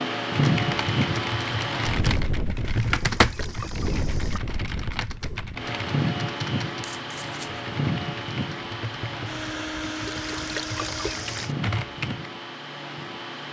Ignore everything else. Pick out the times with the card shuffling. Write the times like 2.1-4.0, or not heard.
6.8-7.6.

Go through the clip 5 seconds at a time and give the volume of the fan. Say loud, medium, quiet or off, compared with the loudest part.
loud, loud, medium.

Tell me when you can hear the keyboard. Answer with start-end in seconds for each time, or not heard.
0.3-12.2.